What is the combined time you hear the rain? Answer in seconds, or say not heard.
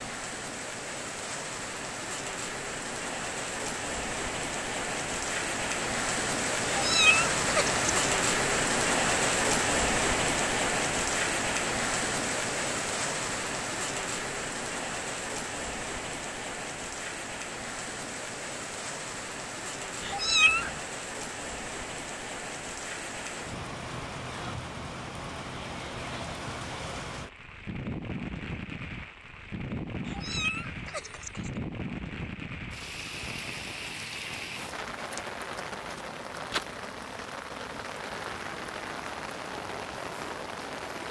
41 s.